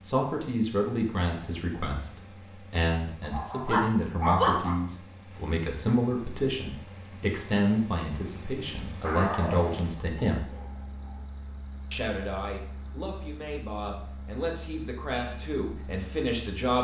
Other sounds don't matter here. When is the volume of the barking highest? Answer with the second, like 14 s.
4 s.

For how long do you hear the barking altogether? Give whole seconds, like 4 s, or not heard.
4 s.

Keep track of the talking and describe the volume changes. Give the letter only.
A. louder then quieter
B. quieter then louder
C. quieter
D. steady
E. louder
D.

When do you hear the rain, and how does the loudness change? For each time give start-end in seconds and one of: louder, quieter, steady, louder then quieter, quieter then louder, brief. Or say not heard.
not heard.